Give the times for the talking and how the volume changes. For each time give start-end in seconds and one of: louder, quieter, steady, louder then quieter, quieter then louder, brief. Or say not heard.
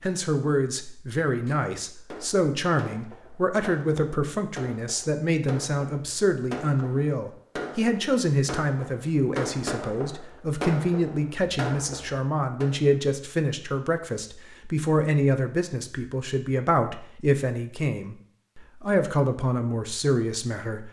0.0-20.8 steady.